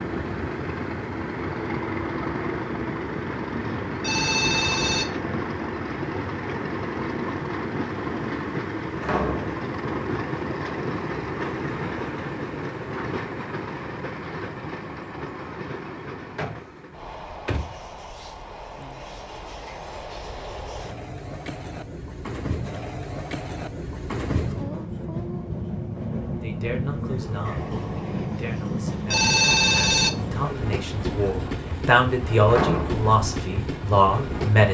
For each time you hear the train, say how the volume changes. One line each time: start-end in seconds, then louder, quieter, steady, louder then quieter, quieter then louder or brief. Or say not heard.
0.0-34.7 quieter then louder.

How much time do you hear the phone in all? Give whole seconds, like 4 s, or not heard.
2 s.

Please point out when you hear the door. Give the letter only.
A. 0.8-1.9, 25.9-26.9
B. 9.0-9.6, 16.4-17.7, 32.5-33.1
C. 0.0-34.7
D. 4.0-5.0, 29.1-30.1
B.